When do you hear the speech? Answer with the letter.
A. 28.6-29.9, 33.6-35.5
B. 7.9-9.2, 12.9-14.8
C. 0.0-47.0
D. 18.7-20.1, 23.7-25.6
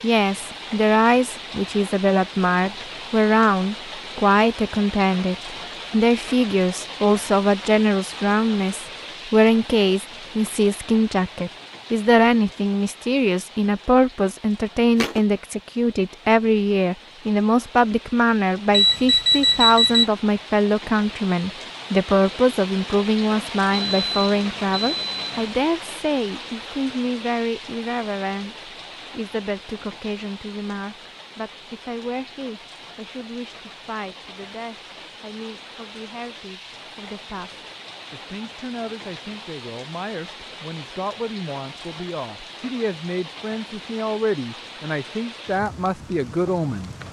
C.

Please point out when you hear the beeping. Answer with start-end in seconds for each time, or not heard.
18.7-20.1, 23.7-25.6.